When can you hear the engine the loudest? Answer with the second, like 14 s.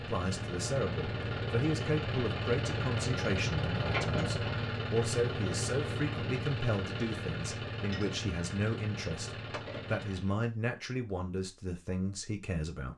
4 s.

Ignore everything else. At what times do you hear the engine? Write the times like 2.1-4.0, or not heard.
0.0-10.3.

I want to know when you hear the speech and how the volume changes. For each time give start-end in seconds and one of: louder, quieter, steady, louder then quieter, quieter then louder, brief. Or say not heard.
0.0-12.9 steady.